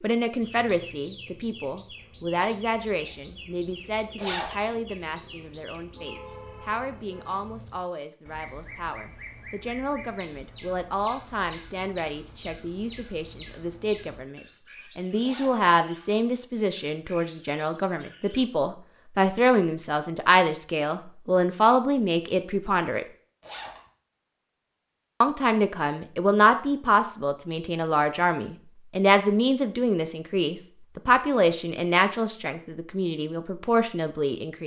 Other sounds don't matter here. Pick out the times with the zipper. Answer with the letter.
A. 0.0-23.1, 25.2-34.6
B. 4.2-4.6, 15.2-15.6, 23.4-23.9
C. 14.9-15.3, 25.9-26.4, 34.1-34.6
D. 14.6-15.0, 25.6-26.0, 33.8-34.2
B.